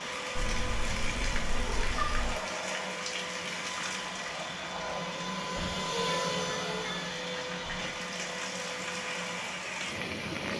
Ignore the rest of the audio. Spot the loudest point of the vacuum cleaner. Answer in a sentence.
The loudest moment of the vacuum cleaner is at 6 seconds.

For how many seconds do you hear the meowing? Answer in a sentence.
You can hear the meowing for 3 seconds altogether.